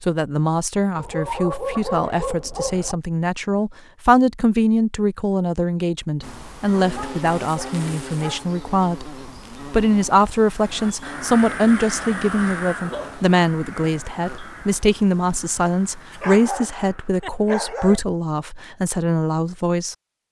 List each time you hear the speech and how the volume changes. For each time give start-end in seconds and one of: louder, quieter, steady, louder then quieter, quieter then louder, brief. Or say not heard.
0.0-20.2 steady.